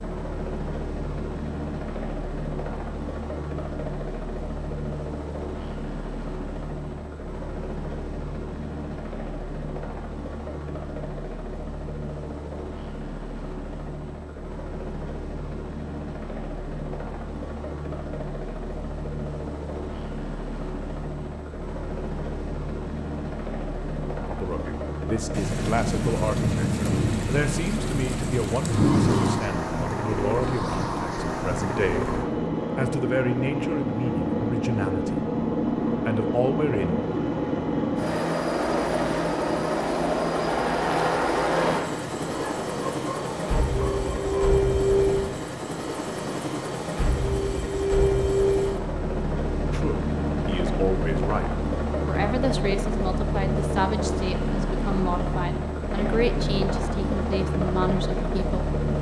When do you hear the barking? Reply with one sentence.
The barking can be heard from 42.2 to 44.5 s.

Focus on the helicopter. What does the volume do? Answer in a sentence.
The loudness of the helicopter goes up.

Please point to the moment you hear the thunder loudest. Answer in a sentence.
The loudest moment of the thunder is at 29 seconds.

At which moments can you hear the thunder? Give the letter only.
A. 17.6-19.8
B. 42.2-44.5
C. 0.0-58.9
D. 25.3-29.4
D.